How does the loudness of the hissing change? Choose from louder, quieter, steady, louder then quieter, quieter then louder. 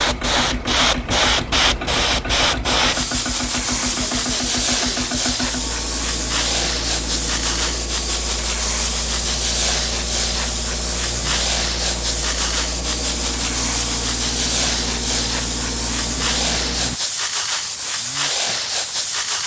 steady.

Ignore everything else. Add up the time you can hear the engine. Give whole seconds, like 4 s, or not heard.
17 s.